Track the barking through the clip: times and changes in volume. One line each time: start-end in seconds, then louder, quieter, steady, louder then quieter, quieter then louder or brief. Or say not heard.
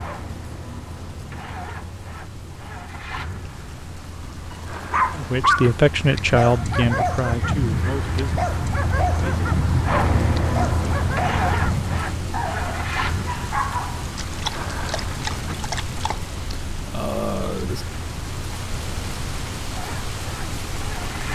4.5-16.2 quieter.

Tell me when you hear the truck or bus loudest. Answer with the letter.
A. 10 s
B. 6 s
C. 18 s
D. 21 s
A.